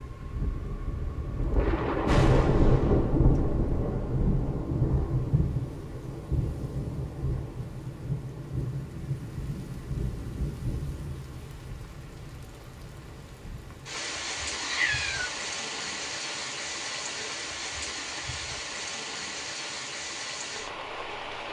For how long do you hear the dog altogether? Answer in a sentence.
You can't hear the dog here.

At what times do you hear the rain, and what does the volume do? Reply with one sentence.
You can hear the rain from 0.0 to 21.4 s, getting quieter.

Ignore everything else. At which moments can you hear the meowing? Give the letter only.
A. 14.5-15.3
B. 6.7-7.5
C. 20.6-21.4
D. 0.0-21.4
A.